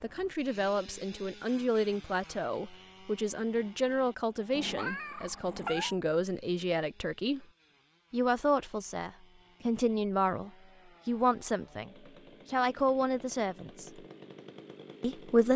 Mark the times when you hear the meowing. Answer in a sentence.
The meowing can be heard from 4.5 to 6.0 s.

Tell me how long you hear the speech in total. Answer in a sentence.
The speech can be heard for 14 seconds in total.